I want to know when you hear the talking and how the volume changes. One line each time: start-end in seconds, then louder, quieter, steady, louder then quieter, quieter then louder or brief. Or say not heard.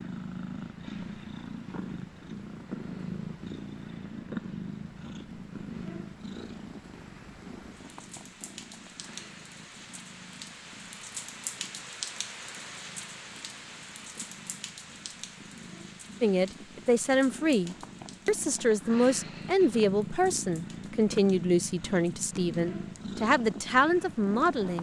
16.2-24.7 steady.